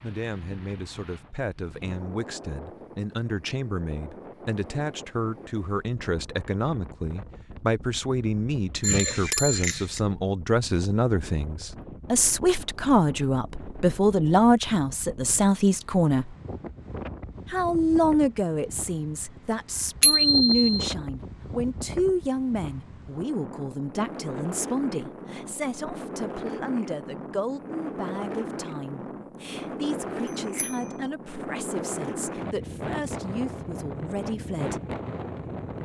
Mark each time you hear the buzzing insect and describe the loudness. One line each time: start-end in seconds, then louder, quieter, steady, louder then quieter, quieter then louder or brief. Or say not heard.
not heard.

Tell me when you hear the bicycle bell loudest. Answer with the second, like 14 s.
20 s.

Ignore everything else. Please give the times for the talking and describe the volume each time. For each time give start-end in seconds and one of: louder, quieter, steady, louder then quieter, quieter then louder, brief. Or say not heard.
0.0-16.4 louder
17.5-34.8 quieter.